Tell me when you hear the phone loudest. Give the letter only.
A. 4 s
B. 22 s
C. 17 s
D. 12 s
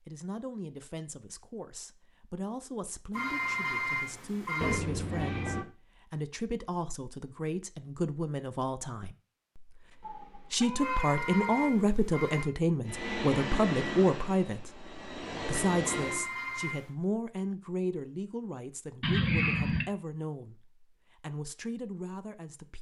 A.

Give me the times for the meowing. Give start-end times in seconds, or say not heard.
4.6-5.7, 10.0-11.9, 19.0-19.9.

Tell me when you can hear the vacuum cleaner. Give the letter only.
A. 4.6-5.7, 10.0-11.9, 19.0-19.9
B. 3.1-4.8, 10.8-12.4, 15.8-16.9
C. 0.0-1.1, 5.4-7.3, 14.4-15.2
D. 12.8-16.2
D.